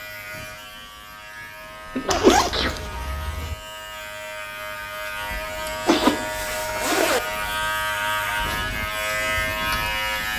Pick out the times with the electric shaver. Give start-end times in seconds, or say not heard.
0.0-10.3.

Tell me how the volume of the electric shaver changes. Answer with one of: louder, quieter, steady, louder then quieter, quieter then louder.
louder.